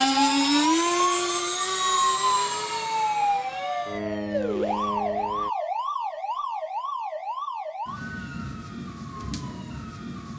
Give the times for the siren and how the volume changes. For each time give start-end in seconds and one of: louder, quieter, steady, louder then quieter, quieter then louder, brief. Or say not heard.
0.0-10.3 quieter.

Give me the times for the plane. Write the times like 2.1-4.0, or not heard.
0.0-5.5.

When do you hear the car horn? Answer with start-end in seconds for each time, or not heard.
not heard.